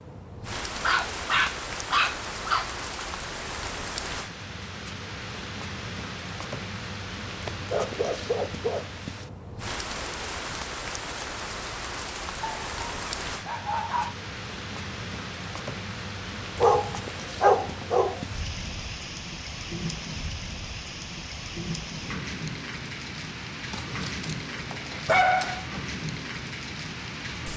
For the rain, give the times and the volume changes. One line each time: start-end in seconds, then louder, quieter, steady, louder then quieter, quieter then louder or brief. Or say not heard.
0.0-27.5 steady.